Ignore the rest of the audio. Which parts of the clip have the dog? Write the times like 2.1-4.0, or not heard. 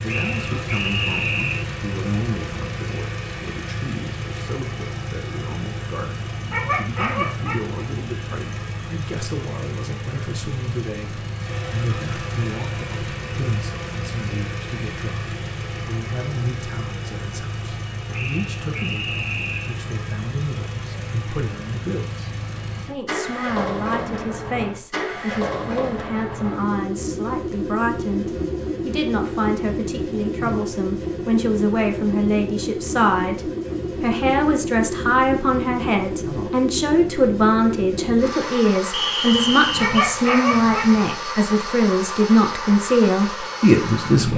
6.3-7.8, 39.3-41.1.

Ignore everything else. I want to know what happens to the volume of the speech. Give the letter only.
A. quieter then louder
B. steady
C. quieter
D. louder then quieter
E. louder
E.